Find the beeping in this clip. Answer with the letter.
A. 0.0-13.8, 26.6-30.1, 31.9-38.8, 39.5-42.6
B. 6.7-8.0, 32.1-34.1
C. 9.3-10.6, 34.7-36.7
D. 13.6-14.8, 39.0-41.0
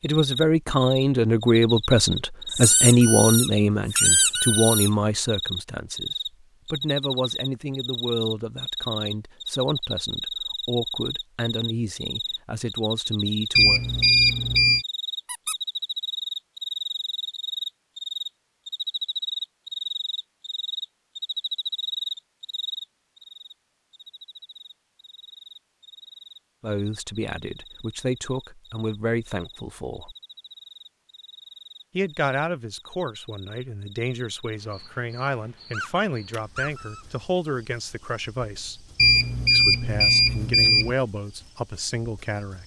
D.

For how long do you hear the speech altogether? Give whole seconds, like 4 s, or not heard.
27 s.